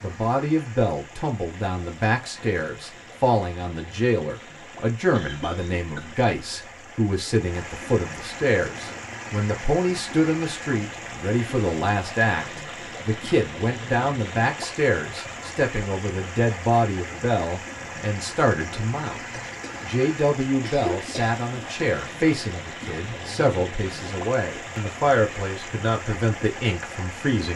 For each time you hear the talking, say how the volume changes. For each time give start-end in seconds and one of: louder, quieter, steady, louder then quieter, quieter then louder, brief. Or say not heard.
0.0-27.5 steady.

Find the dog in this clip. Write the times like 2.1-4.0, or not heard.
not heard.